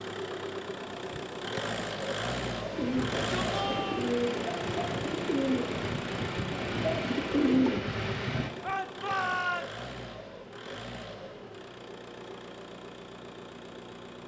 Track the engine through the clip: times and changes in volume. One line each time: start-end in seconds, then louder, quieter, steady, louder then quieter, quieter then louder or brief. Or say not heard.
0.0-14.2 quieter.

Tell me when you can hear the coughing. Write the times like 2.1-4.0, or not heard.
not heard.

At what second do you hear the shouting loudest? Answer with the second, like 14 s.
9 s.